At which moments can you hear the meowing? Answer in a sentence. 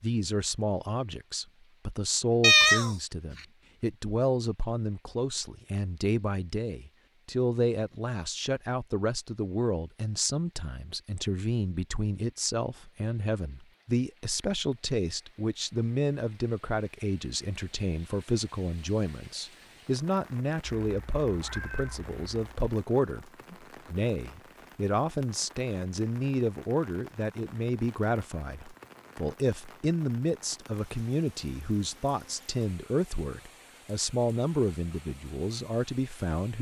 The meowing can be heard from 2.4 to 3.0 s and from 20.8 to 22.5 s.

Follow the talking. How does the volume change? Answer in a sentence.
The volume of the talking stays about the same.